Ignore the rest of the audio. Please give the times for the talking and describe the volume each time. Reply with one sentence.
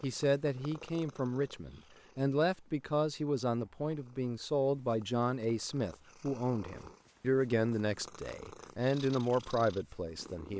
The talking can be heard from 0.0 to 10.5 s, at a steady volume.